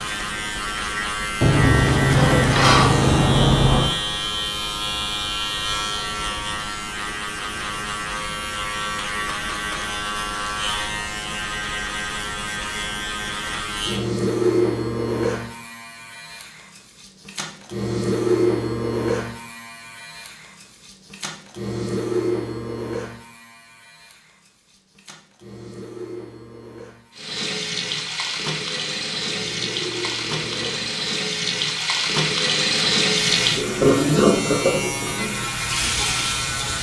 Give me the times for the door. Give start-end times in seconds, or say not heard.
1.4-4.0.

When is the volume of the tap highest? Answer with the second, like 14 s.
34 s.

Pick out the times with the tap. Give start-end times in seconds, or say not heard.
27.1-36.7.